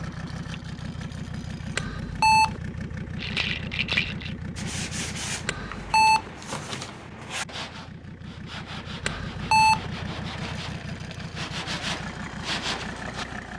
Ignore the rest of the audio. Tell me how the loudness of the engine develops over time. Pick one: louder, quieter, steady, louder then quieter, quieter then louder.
quieter then louder.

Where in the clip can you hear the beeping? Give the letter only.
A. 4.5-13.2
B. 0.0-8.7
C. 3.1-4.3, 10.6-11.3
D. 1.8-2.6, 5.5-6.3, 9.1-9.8
D.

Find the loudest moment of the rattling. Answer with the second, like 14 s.
4 s.